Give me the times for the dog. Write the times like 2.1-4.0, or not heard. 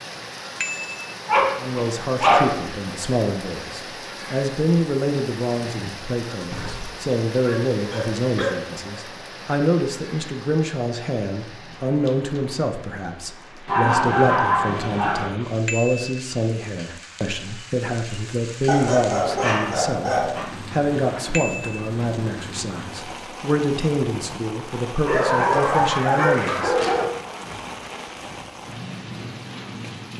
1.2-2.5, 6.5-8.5, 13.7-15.3, 18.6-20.4, 25.1-27.1.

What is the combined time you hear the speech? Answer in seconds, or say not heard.
25 s.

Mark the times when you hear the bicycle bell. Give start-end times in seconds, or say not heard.
0.6-1.1, 15.7-16.1, 21.3-21.9.